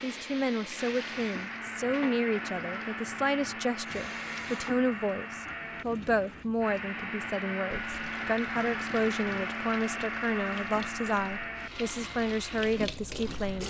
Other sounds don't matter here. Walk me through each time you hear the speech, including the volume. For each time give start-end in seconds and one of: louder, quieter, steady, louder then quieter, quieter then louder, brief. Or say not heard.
0.0-13.6 steady.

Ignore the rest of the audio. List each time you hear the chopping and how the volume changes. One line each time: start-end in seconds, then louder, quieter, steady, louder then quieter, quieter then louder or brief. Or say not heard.
not heard.